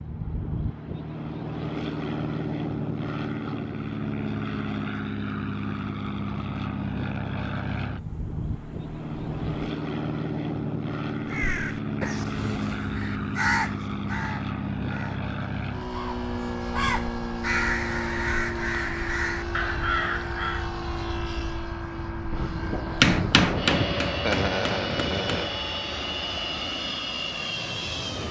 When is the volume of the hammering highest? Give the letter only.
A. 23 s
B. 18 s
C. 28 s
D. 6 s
A.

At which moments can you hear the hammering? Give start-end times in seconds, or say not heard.
22.9-25.6.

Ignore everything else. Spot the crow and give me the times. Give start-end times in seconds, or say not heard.
11.2-20.6.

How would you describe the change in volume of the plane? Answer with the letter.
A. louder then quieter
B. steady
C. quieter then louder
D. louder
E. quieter
B.